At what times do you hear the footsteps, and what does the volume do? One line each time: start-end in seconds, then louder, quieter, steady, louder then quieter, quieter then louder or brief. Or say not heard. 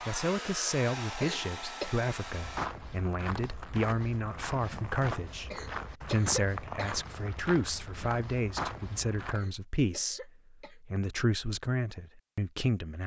2.2-9.4 steady.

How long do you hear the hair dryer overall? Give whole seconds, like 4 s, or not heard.
3 s.